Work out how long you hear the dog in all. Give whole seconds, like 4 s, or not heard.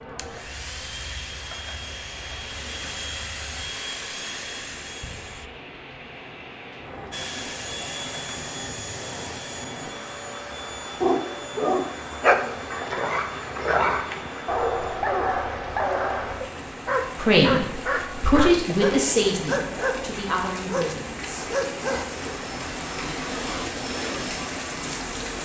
11 s.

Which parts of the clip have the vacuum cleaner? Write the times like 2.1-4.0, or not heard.
0.0-5.5, 7.1-14.9, 22.2-25.2.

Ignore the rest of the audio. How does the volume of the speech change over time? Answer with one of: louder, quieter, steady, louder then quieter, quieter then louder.
louder then quieter.